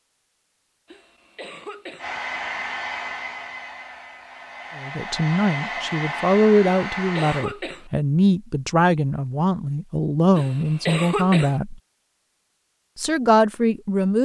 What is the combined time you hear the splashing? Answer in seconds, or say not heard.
not heard.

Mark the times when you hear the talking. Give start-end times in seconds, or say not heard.
4.8-11.8, 12.9-14.2.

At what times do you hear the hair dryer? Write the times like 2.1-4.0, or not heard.
1.9-7.5.